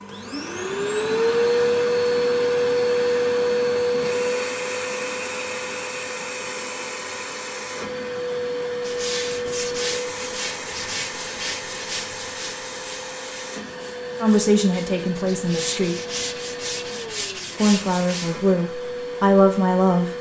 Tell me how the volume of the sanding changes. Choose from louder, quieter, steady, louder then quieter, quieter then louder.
quieter then louder.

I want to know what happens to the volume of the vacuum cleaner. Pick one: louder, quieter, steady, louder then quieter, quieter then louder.
quieter.